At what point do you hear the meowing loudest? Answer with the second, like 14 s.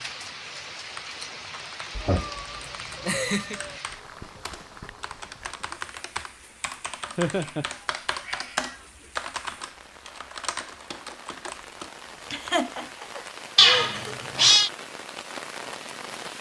14 s.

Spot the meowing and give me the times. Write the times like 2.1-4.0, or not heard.
1.9-3.8, 7.6-8.9, 13.6-14.7.